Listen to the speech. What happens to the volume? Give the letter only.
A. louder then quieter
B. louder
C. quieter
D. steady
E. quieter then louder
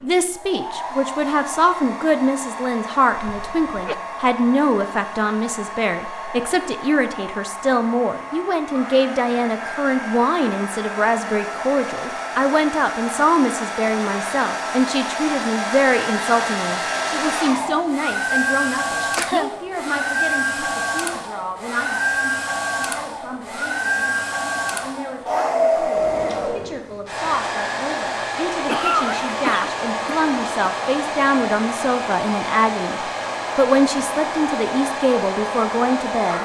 E.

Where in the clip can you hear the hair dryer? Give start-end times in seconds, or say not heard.
0.0-36.3.